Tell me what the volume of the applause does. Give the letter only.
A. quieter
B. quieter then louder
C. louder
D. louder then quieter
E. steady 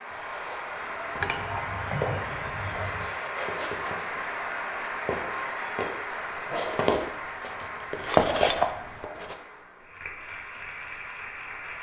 A.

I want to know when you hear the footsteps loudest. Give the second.
8 s.